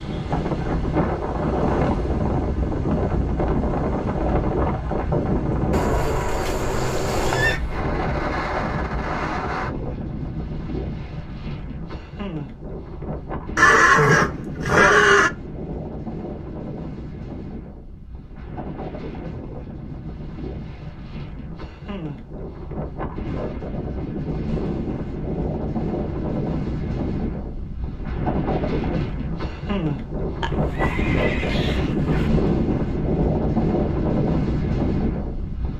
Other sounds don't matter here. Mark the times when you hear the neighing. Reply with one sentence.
The neighing can be heard from 5.7 to 7.6 s, from 13.6 to 15.3 s and from 30.4 to 32.3 s.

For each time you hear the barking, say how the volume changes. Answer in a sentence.
You can't hear the barking here.